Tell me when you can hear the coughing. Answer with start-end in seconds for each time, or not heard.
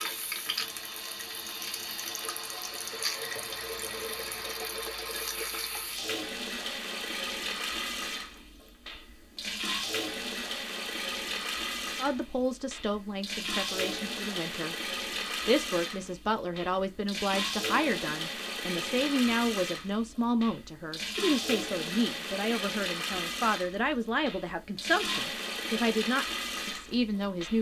not heard.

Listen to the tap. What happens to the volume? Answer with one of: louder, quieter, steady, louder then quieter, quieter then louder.
steady.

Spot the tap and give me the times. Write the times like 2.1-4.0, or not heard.
0.0-27.5.